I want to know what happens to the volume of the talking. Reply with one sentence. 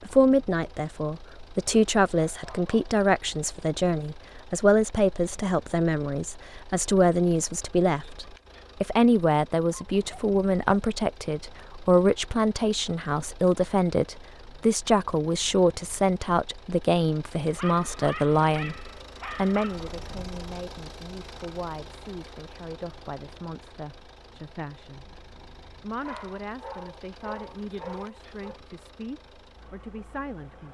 The volume of the talking goes down.